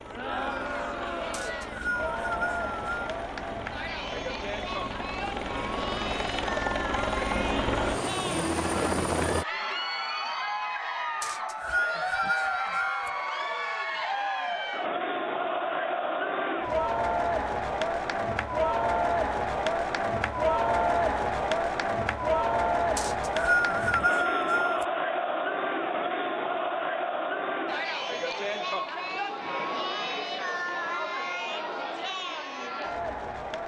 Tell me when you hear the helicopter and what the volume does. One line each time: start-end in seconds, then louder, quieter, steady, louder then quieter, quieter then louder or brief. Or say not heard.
0.0-9.4 louder.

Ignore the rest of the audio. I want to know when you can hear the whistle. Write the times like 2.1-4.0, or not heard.
1.3-3.1, 11.2-13.1, 22.9-24.9.